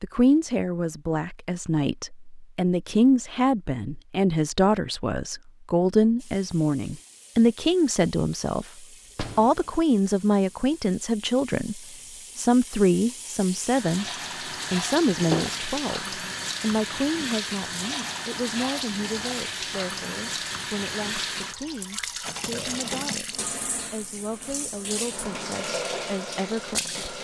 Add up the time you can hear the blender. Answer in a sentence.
The blender can't be heard in this clip.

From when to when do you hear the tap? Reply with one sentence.
The tap can be heard from 6.2 to 27.1 s.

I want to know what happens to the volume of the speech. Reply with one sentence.
The loudness of the speech goes down.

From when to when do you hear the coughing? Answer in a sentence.
The coughing can't be heard in this clip.